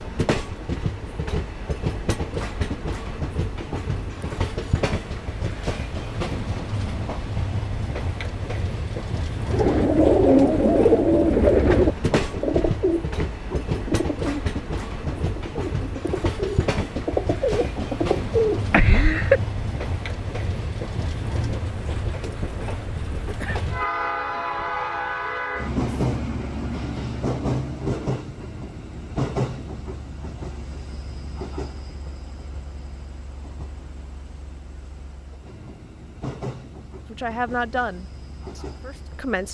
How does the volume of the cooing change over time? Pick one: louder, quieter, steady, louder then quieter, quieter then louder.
quieter then louder.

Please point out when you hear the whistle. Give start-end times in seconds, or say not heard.
not heard.